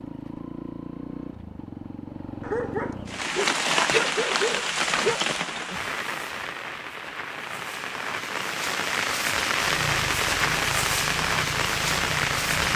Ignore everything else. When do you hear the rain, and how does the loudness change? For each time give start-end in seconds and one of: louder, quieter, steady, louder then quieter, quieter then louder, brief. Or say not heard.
3.0-12.7 quieter then louder.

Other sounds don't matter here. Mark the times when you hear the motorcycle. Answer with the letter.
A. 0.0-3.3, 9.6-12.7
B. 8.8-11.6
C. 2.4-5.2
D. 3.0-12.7
A.